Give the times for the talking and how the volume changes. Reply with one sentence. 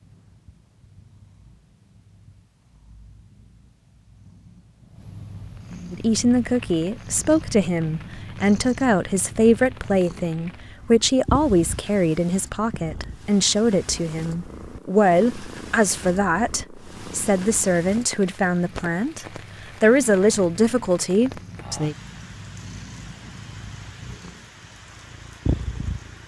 You can hear the talking from 5.9 to 21.9 s, at a steady volume.